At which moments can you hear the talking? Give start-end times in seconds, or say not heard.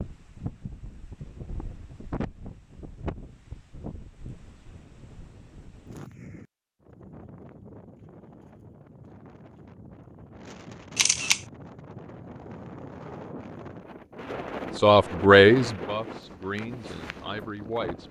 14.8-18.0.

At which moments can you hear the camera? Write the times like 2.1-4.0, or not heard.
10.9-11.4.